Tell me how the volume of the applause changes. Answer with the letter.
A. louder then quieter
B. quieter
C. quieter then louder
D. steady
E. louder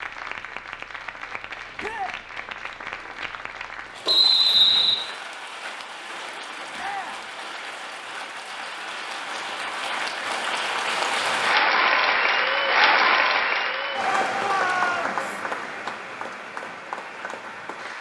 A.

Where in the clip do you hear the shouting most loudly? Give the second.
15 s.